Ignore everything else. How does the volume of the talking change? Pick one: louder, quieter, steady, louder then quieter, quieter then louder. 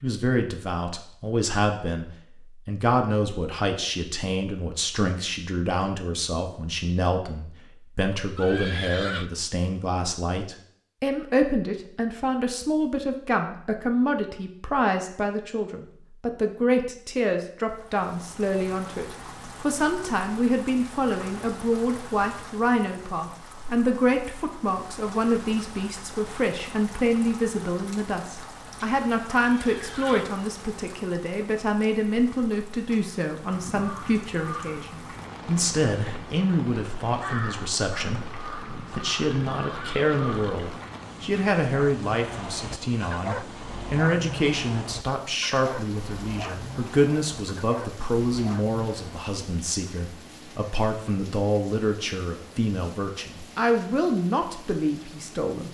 steady.